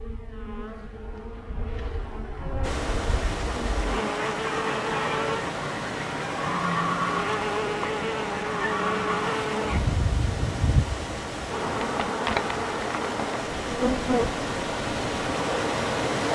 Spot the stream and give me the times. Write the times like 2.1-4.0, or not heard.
2.6-16.2.